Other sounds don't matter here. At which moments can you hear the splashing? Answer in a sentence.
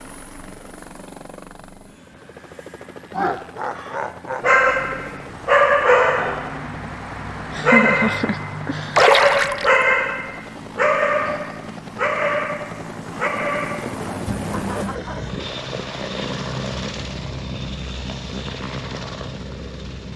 You can hear the splashing from 8.9 to 9.8 s.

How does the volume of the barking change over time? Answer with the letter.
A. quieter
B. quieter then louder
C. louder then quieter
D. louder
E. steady
A.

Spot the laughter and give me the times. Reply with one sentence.
The laughter can be heard from 3.1 to 4.5 s, from 7.5 to 9.1 s and from 14.5 to 15.3 s.